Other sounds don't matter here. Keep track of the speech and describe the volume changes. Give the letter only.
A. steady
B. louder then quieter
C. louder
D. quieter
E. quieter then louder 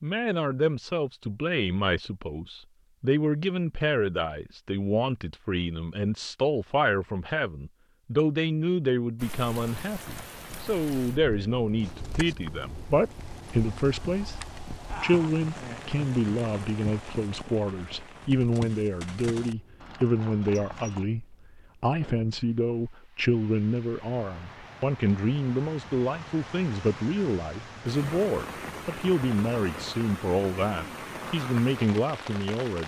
A.